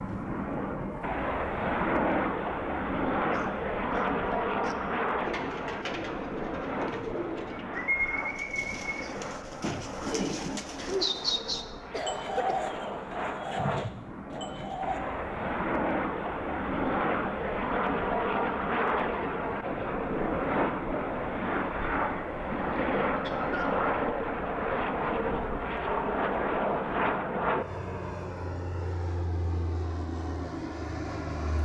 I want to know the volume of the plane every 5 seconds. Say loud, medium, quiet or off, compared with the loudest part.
loud, medium, medium, loud, loud, loud, medium.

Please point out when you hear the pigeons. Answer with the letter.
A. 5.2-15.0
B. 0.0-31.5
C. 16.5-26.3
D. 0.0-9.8
A.